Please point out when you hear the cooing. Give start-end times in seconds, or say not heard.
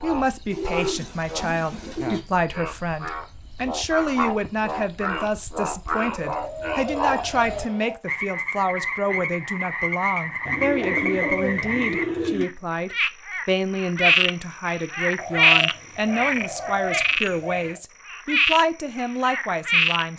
0.5-2.2, 6.2-8.0, 10.4-12.4, 15.2-17.8.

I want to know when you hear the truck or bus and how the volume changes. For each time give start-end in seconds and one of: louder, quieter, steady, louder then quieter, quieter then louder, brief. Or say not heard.
not heard.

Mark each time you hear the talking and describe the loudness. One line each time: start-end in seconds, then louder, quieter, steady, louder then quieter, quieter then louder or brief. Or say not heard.
0.0-20.1 steady.